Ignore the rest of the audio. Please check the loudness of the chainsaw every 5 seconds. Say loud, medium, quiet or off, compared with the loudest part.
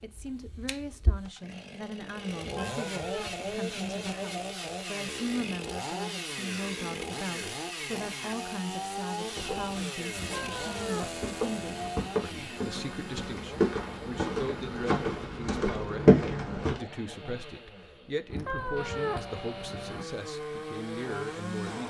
loud, loud, loud, medium, loud.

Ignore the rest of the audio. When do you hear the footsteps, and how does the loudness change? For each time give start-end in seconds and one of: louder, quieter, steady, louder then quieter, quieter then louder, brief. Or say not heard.
9.2-16.8 louder.